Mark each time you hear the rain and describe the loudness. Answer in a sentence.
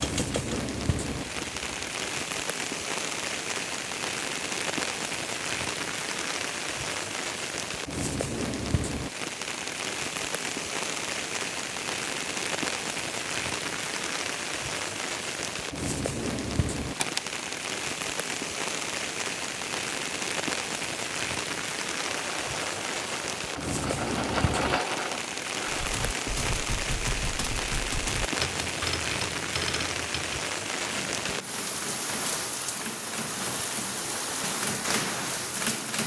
The rain can be heard from 0.0 to 36.0 s, at a steady volume.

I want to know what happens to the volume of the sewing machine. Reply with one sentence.
The loudness of the sewing machine goes up, then down.